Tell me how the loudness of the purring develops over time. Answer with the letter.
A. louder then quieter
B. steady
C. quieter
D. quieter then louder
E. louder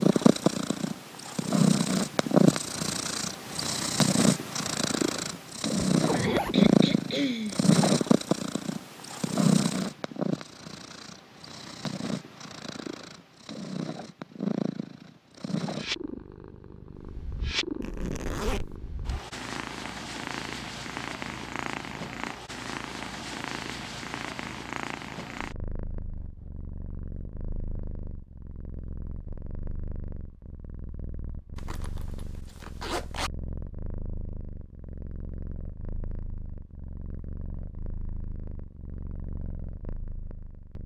C.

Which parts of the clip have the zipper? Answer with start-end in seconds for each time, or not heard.
5.9-6.7, 17.8-18.8, 31.6-33.3.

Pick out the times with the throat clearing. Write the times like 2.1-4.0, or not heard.
6.1-7.7.